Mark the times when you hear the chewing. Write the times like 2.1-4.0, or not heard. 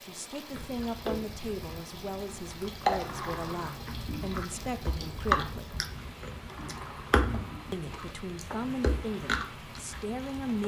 0.5-10.6.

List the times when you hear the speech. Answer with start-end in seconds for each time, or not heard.
0.0-5.8, 7.7-10.6.